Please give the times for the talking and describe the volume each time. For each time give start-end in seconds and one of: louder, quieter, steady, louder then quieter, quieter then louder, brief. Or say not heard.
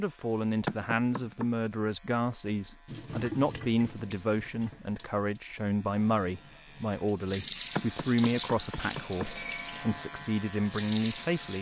0.0-11.5 steady.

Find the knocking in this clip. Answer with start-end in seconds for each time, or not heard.
0.7-1.5, 7.8-9.3.